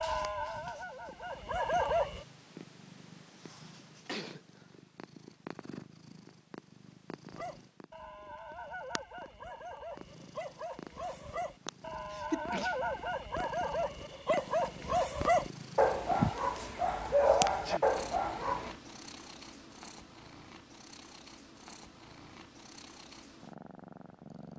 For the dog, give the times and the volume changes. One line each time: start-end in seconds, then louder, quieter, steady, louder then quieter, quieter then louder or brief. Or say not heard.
0.0-2.2 brief
7.3-18.8 louder.